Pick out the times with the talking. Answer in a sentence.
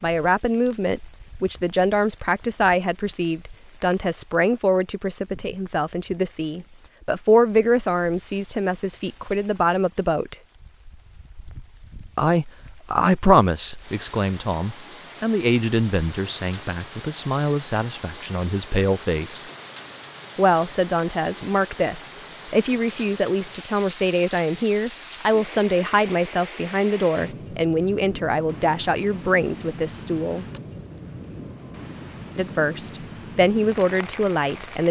The talking can be heard from 0.0 to 10.3 s, from 12.2 to 19.4 s, from 20.4 to 30.4 s and from 32.4 to 34.8 s.